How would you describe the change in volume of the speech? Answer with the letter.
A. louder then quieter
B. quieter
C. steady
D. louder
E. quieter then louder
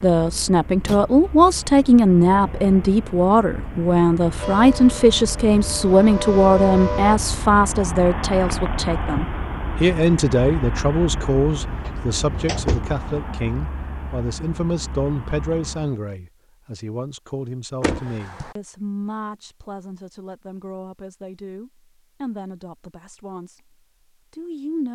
B.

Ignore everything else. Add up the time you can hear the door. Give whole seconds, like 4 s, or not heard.
3 s.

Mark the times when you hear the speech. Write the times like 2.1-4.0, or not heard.
0.0-24.9.